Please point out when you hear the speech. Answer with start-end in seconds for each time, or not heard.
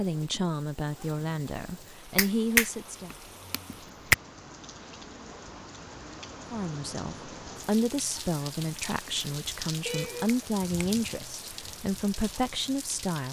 0.0-3.1, 6.5-13.2.